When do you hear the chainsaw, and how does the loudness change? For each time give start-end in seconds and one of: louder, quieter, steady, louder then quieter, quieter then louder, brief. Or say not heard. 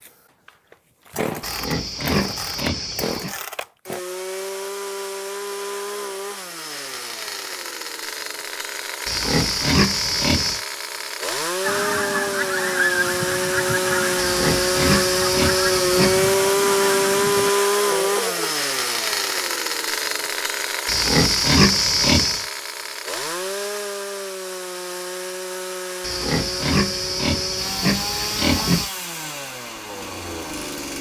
0.0-30.9 louder then quieter.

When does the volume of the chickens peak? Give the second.
13 s.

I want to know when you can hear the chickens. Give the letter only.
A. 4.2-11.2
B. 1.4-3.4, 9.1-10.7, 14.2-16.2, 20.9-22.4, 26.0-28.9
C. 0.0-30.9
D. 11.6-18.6
D.